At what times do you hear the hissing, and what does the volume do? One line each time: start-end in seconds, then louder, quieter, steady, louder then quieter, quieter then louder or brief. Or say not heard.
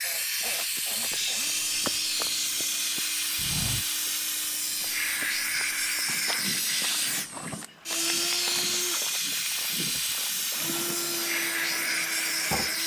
0.0-12.8 steady.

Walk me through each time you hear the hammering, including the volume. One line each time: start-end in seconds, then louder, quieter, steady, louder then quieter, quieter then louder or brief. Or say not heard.
not heard.